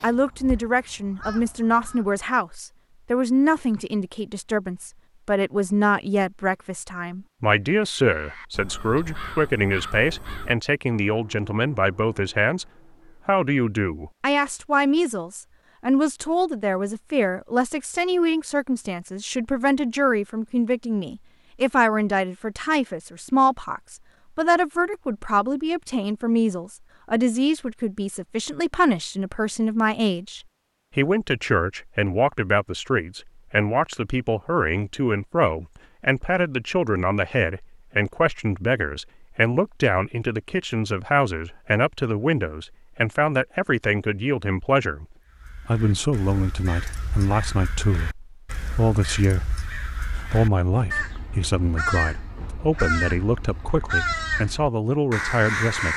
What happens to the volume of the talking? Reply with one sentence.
The volume of the talking stays about the same.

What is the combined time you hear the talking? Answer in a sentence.
The talking can be heard for 55 seconds in total.